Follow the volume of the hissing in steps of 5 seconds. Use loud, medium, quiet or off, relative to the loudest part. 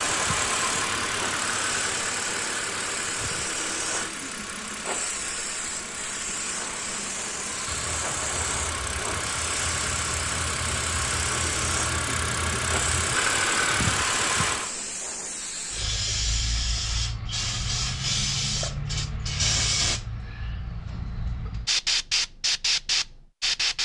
medium, medium, medium, loud, loud.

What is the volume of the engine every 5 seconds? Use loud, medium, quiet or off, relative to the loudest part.
loud, medium, loud, off, off.